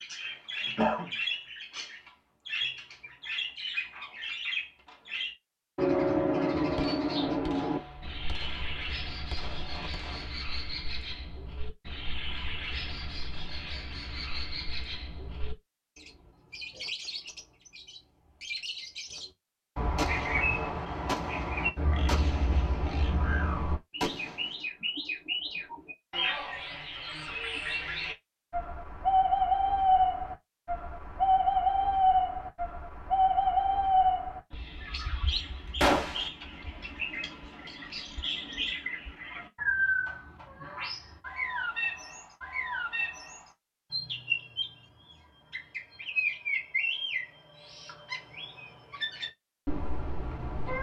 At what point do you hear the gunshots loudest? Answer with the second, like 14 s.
36 s.